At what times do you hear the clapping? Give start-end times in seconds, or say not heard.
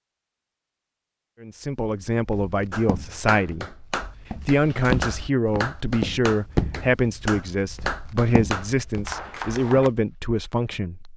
2.7-9.9.